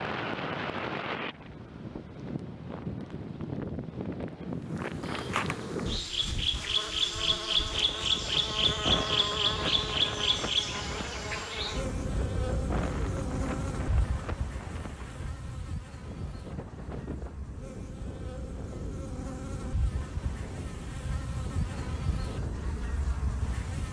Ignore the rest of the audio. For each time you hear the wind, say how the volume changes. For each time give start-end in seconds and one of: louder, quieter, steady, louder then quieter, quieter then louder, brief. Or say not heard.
0.0-23.8 quieter.